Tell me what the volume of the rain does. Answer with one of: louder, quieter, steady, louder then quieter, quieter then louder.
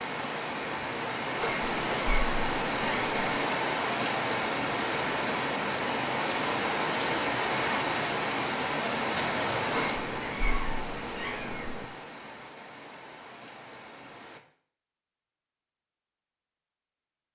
quieter.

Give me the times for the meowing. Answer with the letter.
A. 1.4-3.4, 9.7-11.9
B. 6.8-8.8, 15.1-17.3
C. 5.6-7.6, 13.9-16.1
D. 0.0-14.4
A.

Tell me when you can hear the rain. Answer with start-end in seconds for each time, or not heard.
0.0-14.4.